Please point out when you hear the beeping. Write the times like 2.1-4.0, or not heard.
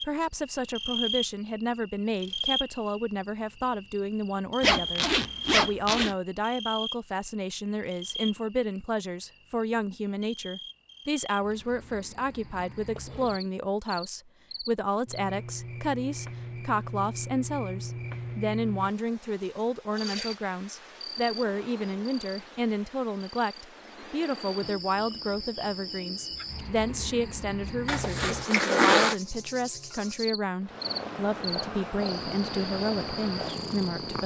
not heard.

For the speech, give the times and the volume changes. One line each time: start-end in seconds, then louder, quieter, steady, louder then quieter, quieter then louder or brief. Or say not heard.
0.0-34.2 steady.